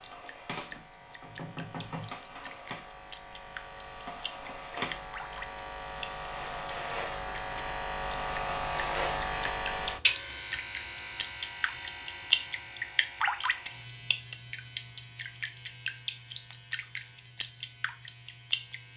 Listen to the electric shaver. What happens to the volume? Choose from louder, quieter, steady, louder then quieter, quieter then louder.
louder then quieter.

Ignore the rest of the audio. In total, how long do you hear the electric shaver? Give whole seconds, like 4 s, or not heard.
19 s.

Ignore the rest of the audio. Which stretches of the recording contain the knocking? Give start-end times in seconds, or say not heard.
0.7-2.1.